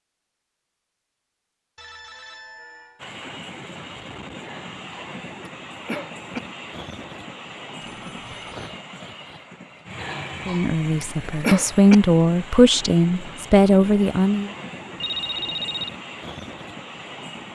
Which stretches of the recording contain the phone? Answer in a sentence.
You can hear the phone from 1.8 to 3.0 s, from 7.8 to 8.7 s and from 14.9 to 15.9 s.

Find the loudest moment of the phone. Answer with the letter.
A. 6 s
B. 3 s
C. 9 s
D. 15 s
D.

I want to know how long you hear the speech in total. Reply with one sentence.
You can hear the speech for 4 seconds altogether.